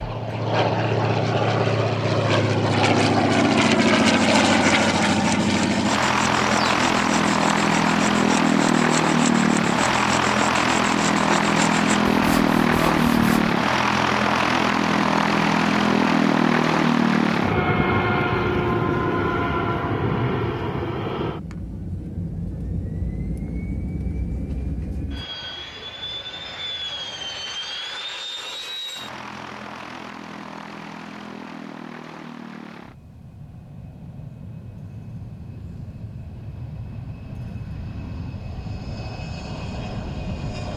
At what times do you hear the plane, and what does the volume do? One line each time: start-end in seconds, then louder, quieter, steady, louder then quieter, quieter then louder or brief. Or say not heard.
0.0-40.7 quieter.